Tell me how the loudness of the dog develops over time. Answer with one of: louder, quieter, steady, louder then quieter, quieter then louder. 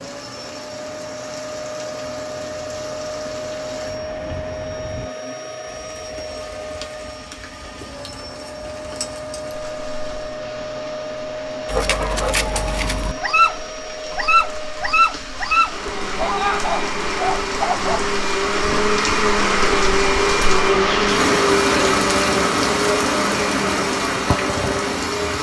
louder then quieter.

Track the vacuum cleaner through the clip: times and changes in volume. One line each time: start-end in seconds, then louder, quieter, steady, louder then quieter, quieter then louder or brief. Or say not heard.
0.0-25.3 louder.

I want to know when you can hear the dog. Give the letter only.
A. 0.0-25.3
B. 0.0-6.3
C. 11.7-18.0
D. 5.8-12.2
C.